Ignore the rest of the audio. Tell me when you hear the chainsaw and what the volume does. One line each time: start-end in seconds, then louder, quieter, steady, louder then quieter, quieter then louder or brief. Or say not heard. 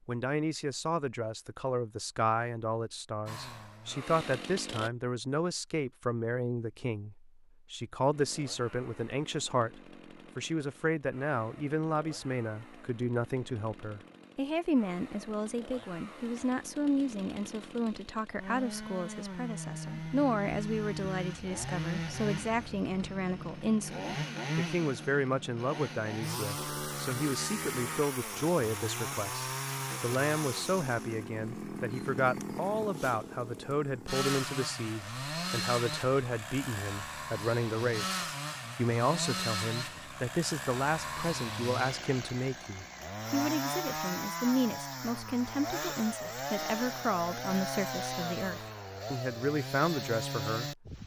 3.2-4.9 brief
8.1-51.0 louder.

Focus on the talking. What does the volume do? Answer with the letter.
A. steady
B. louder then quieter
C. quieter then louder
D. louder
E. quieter
A.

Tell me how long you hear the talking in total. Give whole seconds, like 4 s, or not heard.
51 s.